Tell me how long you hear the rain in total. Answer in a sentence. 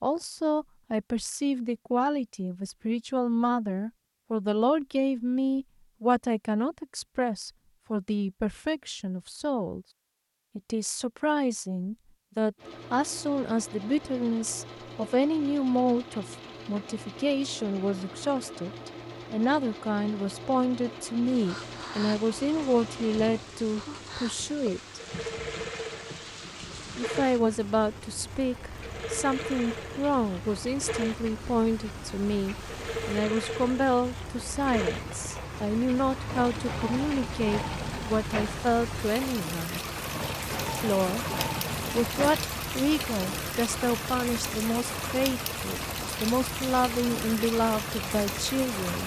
The rain can be heard for 28 seconds in total.